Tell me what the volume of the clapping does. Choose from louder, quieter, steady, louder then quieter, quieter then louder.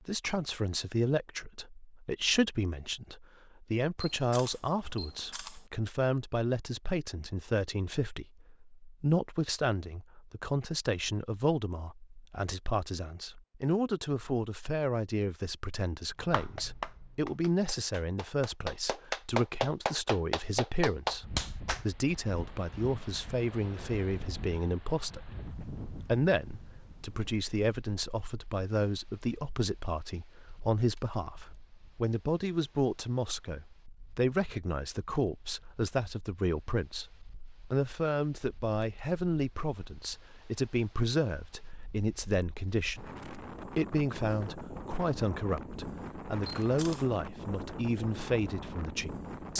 quieter then louder.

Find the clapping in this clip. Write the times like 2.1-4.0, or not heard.
16.2-21.9.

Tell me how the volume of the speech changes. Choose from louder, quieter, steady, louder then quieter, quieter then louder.
steady.